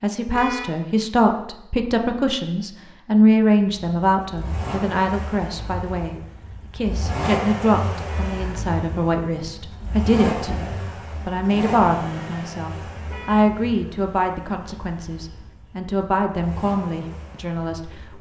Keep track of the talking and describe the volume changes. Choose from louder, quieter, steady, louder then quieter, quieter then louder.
quieter.